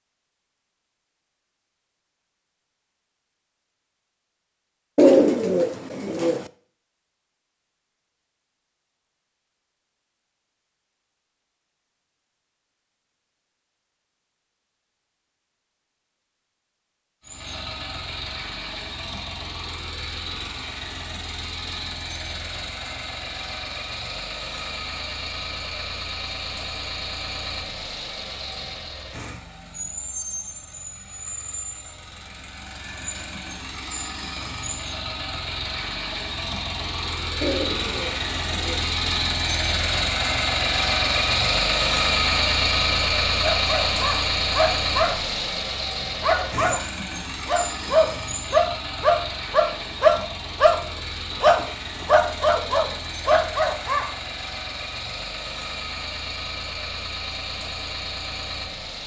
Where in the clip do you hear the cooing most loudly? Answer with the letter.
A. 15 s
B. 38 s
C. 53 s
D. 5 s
D.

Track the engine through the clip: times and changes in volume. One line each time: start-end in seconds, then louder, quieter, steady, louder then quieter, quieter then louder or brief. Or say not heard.
17.2-59.0 louder then quieter.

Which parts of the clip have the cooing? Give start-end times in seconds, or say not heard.
5.0-6.5, 37.4-38.9.